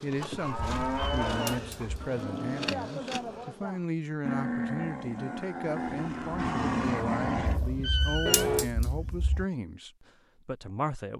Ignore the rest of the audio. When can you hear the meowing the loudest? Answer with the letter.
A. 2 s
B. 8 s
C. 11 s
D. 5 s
B.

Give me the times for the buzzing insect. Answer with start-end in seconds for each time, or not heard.
0.0-3.7.